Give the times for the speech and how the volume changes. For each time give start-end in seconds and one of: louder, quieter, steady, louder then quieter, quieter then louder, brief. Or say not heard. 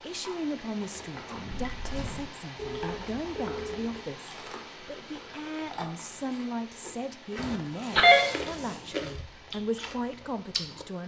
0.0-11.0 steady.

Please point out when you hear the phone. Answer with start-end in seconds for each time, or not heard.
2.5-4.0, 7.3-8.2.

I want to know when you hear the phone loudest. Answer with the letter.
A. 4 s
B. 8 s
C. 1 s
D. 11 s
B.